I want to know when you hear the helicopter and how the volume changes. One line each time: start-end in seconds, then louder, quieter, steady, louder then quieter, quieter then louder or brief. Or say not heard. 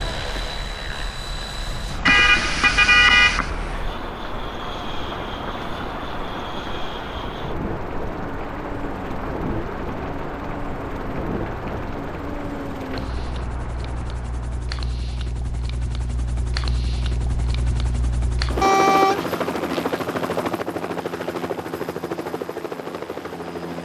0.0-23.8 louder.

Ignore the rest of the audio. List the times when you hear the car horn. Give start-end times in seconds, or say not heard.
2.0-3.5, 18.6-19.2.